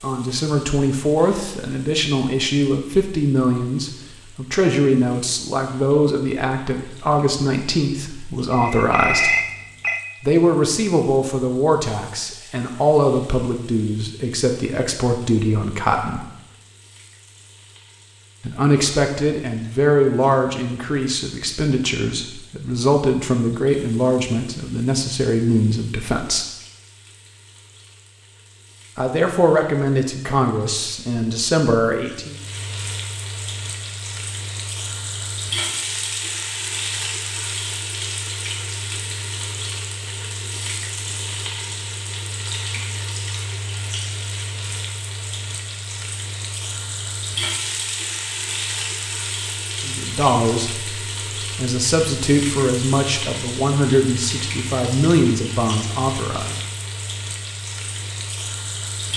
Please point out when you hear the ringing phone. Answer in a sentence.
The ringing phone can be heard from 8.5 to 10.0 s.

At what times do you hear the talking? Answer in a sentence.
The talking can be heard from 0.0 to 9.3 s, from 10.2 to 16.2 s, from 18.4 to 26.4 s, from 28.9 to 32.4 s and from 49.9 to 56.5 s.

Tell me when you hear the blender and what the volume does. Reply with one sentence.
The blender can't be heard in this clip.